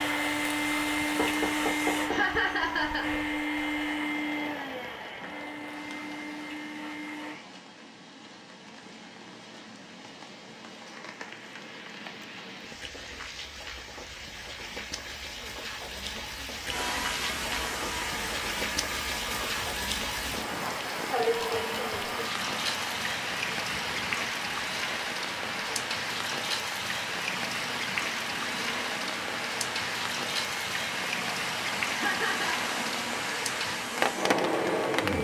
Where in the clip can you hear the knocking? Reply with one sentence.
You can hear the knocking from 1.1 to 2.2 s and from 21.4 to 22.2 s.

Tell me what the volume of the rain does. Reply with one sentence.
The loudness of the rain goes up.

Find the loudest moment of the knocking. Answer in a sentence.
The loudest moment of the knocking is at 2 seconds.